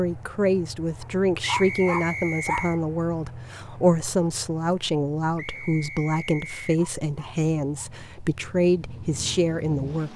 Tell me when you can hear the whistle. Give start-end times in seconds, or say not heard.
1.4-2.8, 5.3-6.7.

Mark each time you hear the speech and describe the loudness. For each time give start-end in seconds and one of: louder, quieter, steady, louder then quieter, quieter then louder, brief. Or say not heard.
0.0-10.1 steady.